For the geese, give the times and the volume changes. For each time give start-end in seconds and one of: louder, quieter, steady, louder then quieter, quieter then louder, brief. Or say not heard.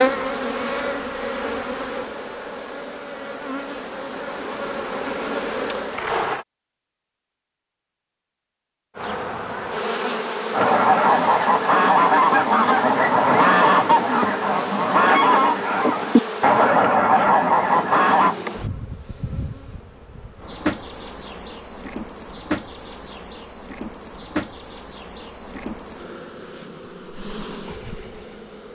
10.5-18.4 steady.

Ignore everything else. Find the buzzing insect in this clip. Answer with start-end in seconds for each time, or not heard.
0.0-6.5, 8.9-28.6.